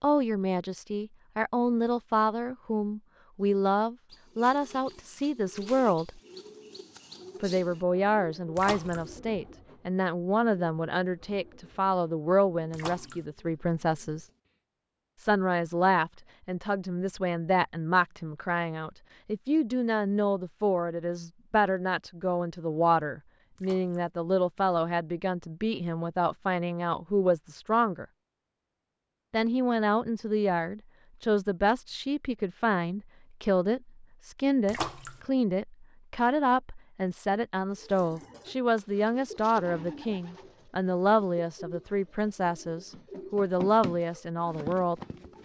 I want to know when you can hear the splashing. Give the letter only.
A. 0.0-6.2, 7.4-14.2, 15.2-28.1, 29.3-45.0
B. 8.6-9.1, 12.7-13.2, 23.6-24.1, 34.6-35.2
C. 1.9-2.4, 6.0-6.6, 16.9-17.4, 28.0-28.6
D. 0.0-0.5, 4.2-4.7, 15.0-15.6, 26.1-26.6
B.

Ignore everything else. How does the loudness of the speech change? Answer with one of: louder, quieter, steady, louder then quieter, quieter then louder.
steady.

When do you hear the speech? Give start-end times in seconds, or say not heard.
0.0-6.2, 7.4-14.2, 15.2-28.1, 29.3-45.0.